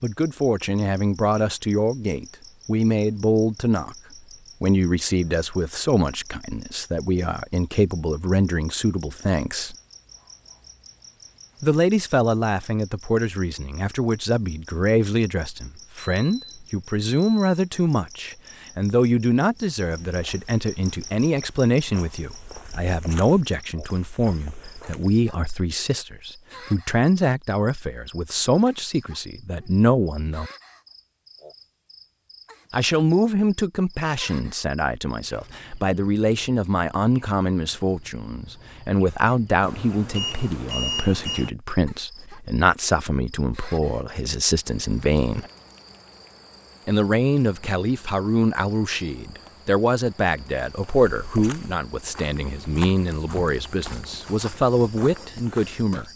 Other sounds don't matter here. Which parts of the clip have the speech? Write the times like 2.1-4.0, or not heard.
0.0-4.0, 4.6-9.8, 11.6-30.5, 32.7-45.5, 46.9-56.0.